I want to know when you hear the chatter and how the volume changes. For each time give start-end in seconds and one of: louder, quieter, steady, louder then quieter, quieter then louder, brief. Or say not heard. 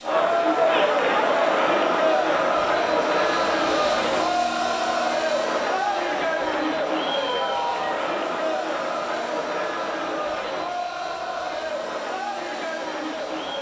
0.0-13.5 quieter.